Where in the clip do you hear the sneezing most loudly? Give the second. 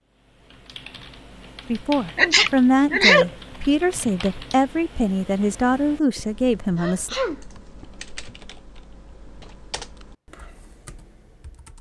3 s.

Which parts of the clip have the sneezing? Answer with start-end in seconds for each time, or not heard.
2.1-3.3, 6.8-8.3.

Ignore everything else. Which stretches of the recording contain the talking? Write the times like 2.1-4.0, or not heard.
1.7-7.2.